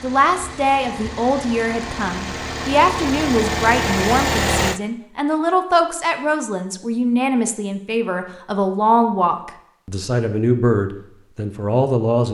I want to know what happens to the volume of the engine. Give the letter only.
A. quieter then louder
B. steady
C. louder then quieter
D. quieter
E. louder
E.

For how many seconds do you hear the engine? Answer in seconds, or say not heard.
5 s.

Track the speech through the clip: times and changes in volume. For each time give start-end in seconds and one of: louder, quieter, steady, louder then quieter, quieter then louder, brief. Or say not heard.
0.0-12.2 steady.